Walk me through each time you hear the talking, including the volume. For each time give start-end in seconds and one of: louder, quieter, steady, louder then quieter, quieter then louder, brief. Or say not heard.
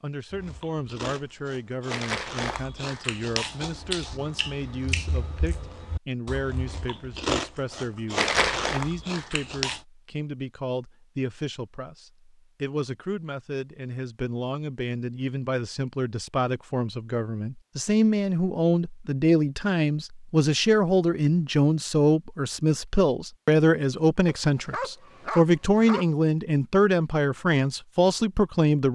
0.0-28.8 louder.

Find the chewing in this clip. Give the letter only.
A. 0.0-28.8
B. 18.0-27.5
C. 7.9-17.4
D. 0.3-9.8
D.